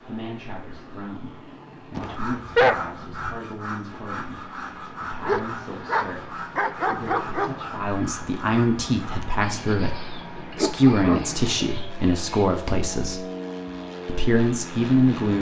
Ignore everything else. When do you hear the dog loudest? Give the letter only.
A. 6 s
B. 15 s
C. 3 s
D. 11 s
C.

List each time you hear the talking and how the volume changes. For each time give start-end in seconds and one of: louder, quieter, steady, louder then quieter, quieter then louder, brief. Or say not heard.
0.0-13.2 louder
14.1-15.3 brief.